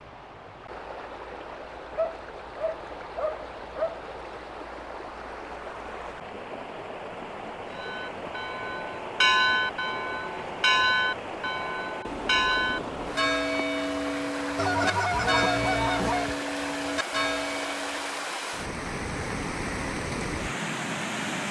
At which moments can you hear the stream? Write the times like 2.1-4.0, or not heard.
0.0-21.4.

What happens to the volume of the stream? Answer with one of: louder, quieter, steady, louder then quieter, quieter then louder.
louder.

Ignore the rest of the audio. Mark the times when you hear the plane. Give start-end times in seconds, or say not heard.
not heard.